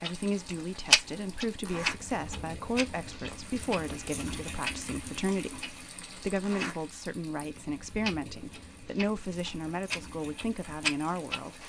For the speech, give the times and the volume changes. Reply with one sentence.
The speech can be heard from 0.0 to 11.6 s, at a steady volume.